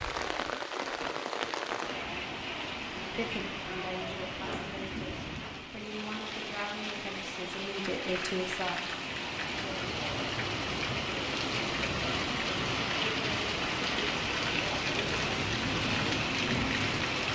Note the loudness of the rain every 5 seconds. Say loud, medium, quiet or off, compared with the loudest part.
medium, medium, loud, loud.